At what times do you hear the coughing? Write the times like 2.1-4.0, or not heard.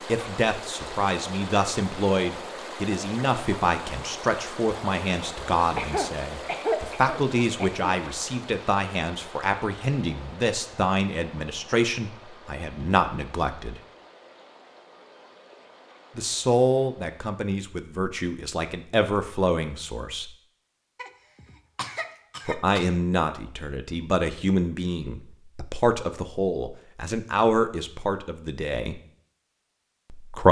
5.8-7.8, 20.9-22.9.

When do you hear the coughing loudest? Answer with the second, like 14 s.
7 s.